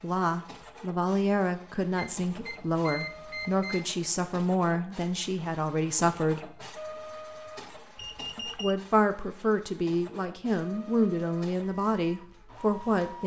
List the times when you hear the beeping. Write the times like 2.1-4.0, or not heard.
1.9-3.9, 8.0-8.8.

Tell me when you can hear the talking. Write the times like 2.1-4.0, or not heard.
0.0-6.4, 8.3-13.2.